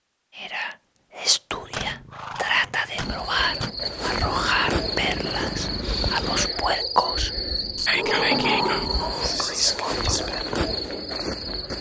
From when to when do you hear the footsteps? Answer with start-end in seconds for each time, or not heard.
not heard.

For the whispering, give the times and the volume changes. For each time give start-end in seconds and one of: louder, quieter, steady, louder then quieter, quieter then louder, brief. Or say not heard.
0.3-10.6 steady.